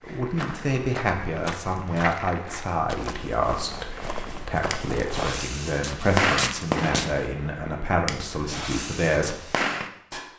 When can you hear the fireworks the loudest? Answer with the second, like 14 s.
6 s.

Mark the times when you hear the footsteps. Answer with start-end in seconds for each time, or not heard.
0.0-7.2.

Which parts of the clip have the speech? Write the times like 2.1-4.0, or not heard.
0.0-9.4.